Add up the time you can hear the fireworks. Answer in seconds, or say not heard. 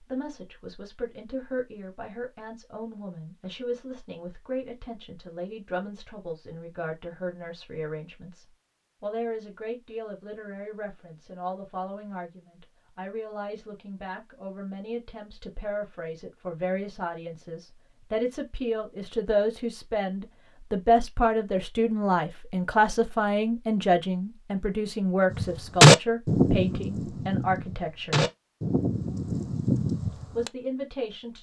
5 s.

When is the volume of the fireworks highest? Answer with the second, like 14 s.
26 s.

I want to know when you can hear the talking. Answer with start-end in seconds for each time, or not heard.
0.0-28.2, 30.4-31.3.